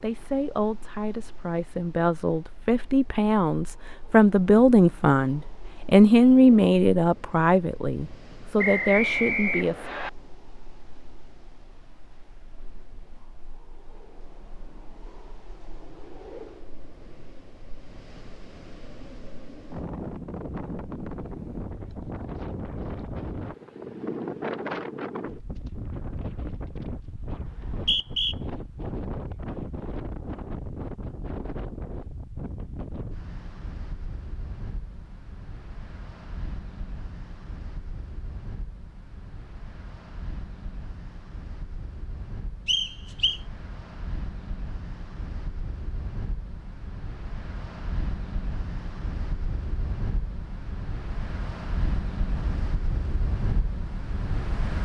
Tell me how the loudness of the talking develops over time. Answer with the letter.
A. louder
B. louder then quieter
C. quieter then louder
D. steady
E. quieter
B.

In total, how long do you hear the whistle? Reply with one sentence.
The whistle can be heard for 3 seconds in total.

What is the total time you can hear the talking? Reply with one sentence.
The talking can be heard for 10 seconds in total.